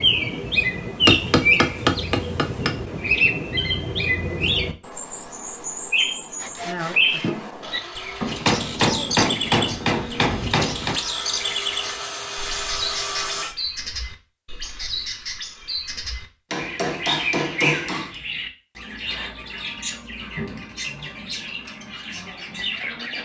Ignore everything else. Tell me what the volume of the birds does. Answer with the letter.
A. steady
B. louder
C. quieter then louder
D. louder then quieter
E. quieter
E.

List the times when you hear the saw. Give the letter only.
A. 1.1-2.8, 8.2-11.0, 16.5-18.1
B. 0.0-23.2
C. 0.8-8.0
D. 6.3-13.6
D.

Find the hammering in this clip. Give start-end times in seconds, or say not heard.
1.1-2.8, 8.2-11.0, 16.5-18.1.